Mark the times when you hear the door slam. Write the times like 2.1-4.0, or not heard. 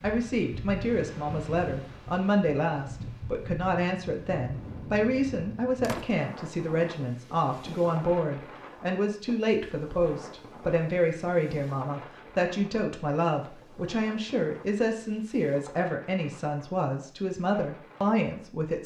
5.8-6.2.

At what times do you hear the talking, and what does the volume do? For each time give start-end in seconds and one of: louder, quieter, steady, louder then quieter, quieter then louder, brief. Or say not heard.
0.0-18.8 steady.